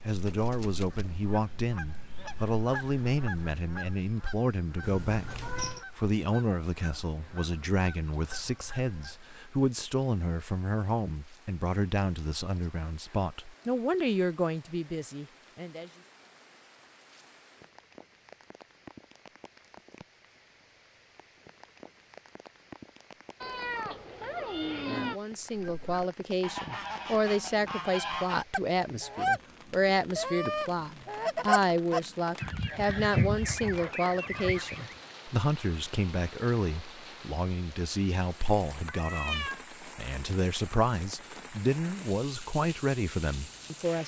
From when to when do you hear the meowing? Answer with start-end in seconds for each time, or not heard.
4.8-5.8, 23.4-25.2, 38.9-39.6.